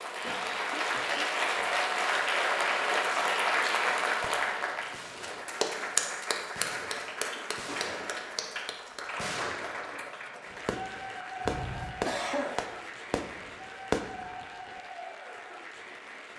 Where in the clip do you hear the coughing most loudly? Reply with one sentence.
The loudest moment of the coughing is at 12 seconds.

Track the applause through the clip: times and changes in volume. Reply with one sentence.
The applause can be heard from 0.0 to 16.3 s, getting quieter.